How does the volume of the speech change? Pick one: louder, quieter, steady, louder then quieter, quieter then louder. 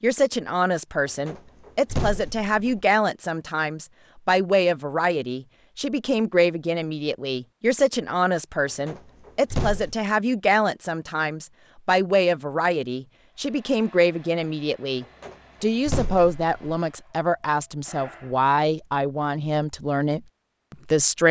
steady.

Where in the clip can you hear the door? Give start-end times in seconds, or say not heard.
1.1-2.8, 8.7-10.0, 15.0-16.8.